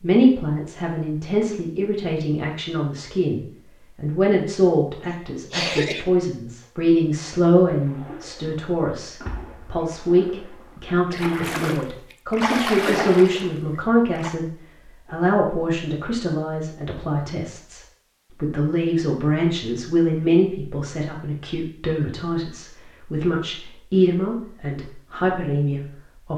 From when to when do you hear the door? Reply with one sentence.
The door can't be heard in this clip.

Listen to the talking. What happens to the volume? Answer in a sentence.
The volume of the talking stays about the same.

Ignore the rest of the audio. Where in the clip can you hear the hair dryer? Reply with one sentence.
You can't hear the hair dryer here.